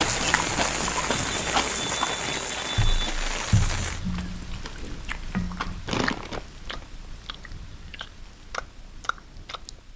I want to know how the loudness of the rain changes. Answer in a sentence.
The volume of the rain goes down.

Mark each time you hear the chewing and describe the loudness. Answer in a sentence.
You can hear the chewing from 0.0 to 9.8 s, getting quieter.